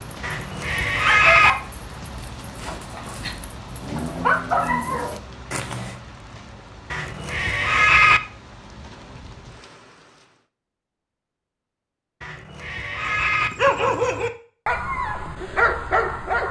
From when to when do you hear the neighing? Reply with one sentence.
The neighing can be heard from 0.2 to 1.6 s, from 6.9 to 8.2 s and from 12.2 to 13.5 s.